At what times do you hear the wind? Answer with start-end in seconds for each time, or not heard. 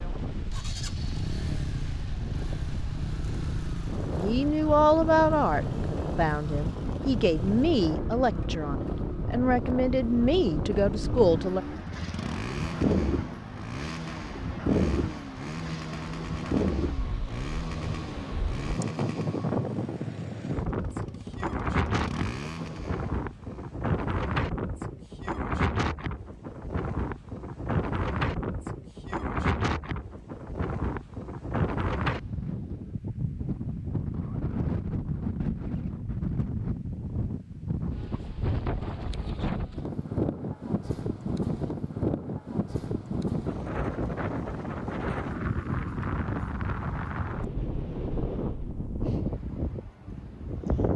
0.0-50.9.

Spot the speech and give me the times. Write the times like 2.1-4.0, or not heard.
4.2-11.6.